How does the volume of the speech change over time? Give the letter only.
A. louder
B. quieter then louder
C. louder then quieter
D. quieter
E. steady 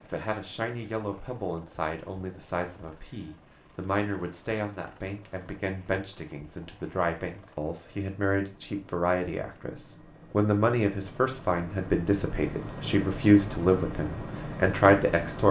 A.